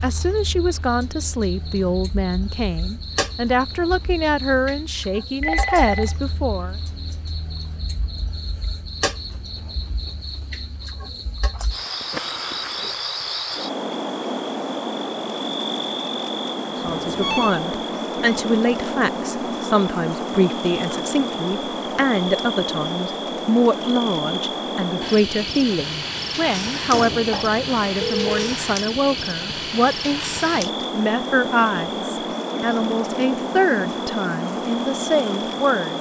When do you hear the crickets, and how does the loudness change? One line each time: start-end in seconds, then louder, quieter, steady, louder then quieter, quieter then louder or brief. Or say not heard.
0.0-35.9 louder.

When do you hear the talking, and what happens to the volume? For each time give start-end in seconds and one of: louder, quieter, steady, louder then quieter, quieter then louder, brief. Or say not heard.
0.0-6.8 steady
16.6-35.9 steady.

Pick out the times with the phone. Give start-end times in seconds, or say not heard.
5.4-6.2, 16.9-17.6, 26.9-28.6.